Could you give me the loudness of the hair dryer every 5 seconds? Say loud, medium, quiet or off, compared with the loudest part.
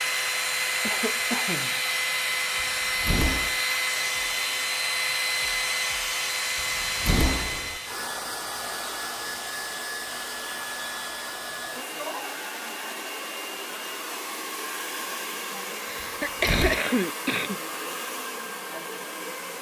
loud, loud, medium, medium.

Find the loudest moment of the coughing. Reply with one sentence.
The volume of the coughing peaks at 17 seconds.